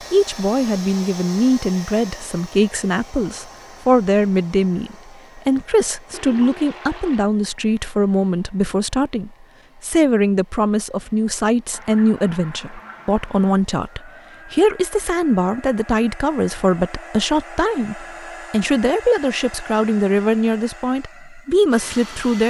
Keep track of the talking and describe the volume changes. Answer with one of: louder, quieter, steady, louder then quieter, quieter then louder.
steady.